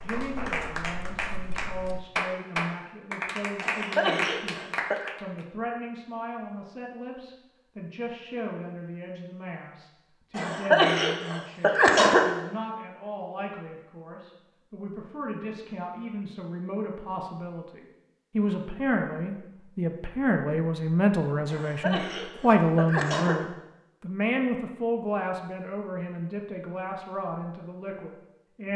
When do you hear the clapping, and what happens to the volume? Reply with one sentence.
You can hear the clapping from 0.0 to 5.5 s, at a steady volume.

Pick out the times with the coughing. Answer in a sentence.
The coughing can be heard from 3.6 to 5.2 s, from 10.3 to 12.3 s and from 21.4 to 23.4 s.